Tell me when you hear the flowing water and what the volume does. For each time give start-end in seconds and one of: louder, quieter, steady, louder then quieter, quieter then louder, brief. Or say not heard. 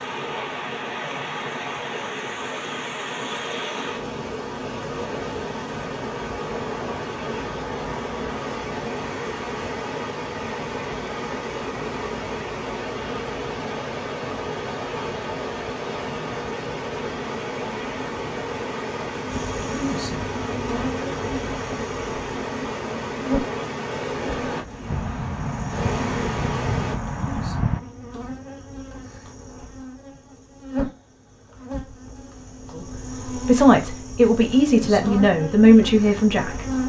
0.0-26.9 steady.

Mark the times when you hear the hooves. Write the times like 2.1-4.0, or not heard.
24.8-27.8.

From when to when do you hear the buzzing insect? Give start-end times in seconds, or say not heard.
19.2-36.8.